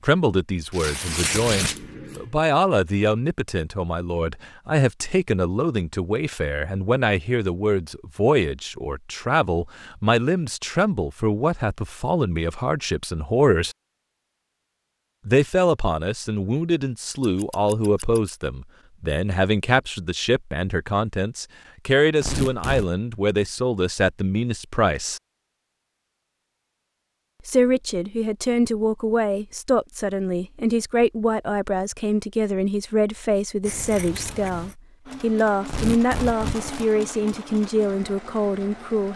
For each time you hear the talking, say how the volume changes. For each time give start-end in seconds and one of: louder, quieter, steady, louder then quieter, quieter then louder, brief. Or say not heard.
0.0-13.8 steady
15.2-25.2 steady
27.4-39.1 steady.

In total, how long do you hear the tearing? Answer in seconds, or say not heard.
3 s.